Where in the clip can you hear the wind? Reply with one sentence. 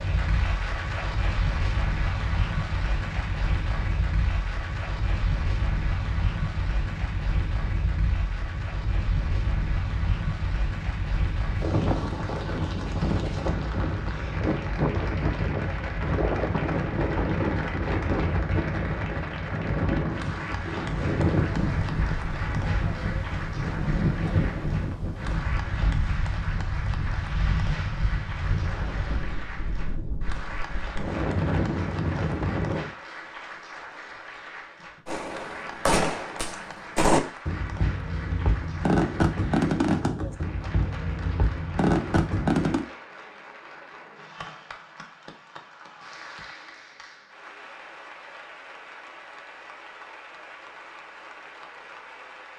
You can hear the wind from 0.0 to 32.9 s.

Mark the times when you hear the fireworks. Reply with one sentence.
You can hear the fireworks from 35.0 to 42.9 s.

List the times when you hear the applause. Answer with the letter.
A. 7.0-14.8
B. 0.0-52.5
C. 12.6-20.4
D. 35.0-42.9
B.